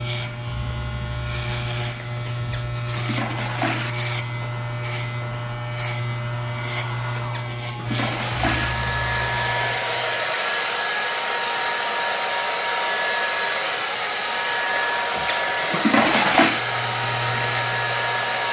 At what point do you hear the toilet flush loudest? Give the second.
16 s.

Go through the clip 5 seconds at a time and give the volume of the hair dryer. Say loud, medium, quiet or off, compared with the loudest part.
quiet, medium, loud, loud.